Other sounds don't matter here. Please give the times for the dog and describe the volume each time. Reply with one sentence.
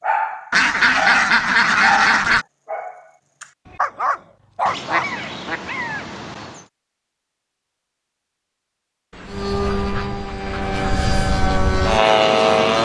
You can hear the dog from 0.0 to 5.2 s, getting quieter then louder.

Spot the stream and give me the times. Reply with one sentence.
You can't hear the stream here.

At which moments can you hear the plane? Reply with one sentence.
The plane can be heard from 9.2 to 12.8 s.